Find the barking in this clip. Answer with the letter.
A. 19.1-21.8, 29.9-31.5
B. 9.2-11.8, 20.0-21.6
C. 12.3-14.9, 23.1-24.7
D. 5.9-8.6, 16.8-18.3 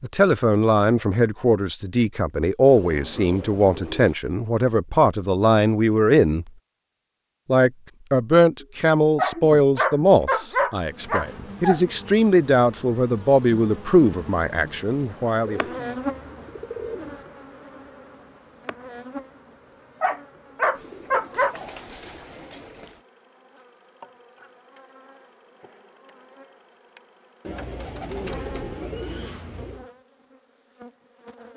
B.